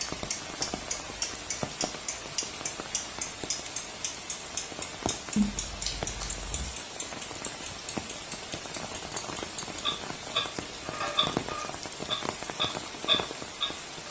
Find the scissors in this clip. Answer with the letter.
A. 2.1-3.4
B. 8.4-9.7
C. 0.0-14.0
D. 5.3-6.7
D.